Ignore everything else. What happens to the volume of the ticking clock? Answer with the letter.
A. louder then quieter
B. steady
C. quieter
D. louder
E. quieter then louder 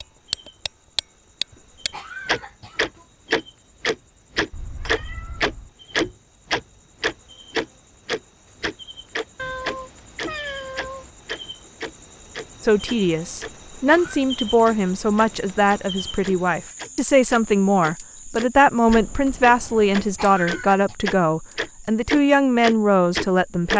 E.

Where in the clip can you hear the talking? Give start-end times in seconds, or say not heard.
12.6-23.7.